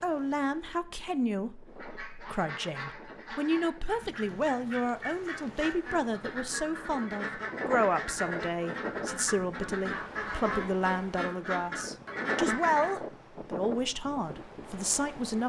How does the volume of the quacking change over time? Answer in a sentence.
The loudness of the quacking goes up.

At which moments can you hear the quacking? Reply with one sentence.
You can hear the quacking from 1.8 to 12.9 s.